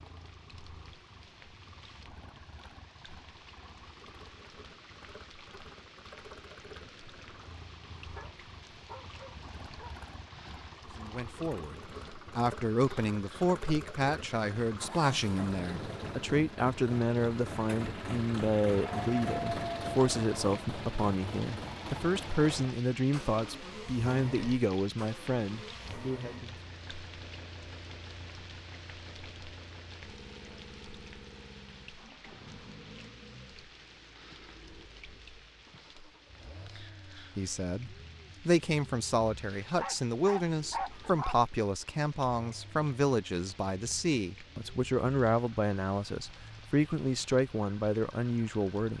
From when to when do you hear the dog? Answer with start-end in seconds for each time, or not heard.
8.2-9.9, 18.7-20.6, 39.8-41.4.